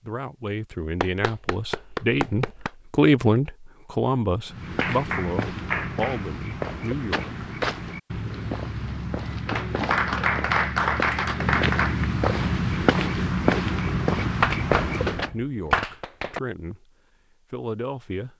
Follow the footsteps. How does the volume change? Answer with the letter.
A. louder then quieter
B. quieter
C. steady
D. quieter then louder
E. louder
E.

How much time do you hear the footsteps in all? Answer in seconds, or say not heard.
11 s.